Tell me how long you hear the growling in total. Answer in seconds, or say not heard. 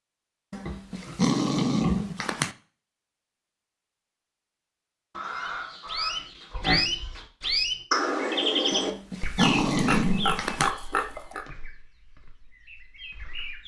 4 s.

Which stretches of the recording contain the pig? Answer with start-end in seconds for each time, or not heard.
0.7-2.0, 5.2-7.2, 9.3-11.4.